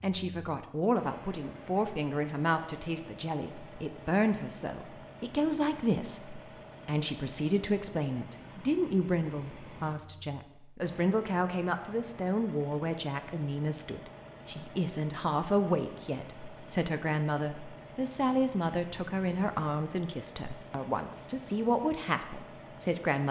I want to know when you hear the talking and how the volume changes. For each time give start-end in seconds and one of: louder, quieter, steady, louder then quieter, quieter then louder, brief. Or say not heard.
0.0-23.2 steady.